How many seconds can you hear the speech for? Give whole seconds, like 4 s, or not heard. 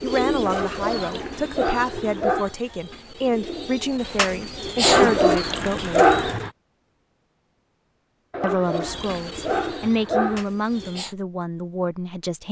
10 s.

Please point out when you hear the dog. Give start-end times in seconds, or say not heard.
0.5-2.5, 4.8-6.5, 8.3-10.4.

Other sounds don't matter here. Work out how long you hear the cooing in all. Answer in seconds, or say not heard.
9 s.